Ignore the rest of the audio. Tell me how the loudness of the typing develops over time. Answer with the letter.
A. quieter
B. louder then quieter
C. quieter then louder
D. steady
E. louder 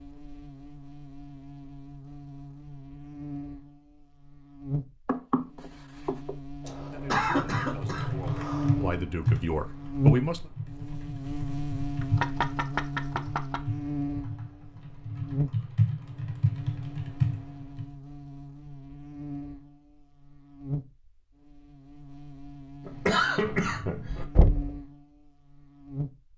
C.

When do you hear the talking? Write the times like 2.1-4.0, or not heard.
6.8-10.5.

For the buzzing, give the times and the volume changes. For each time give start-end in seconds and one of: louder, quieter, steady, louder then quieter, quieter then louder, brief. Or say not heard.
0.0-26.3 louder then quieter.